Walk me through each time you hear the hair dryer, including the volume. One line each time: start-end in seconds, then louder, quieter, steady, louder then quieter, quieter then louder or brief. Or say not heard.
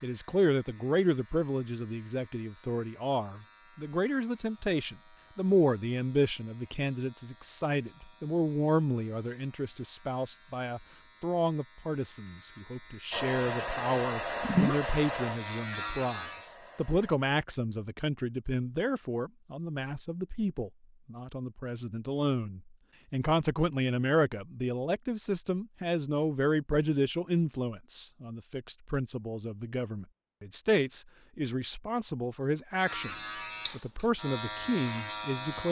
13.1-17.2 quieter.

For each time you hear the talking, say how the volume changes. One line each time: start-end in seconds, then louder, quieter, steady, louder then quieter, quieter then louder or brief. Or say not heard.
0.0-35.6 steady.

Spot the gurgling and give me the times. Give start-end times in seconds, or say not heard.
14.4-14.9.